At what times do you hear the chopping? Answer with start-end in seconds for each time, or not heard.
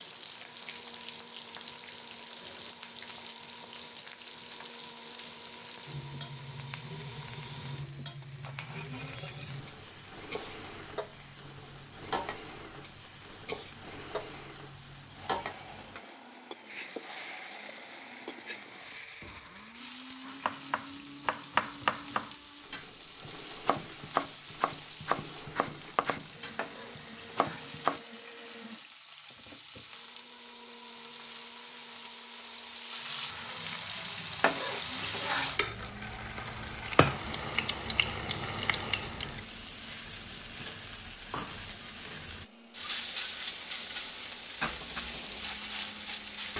20.2-28.0.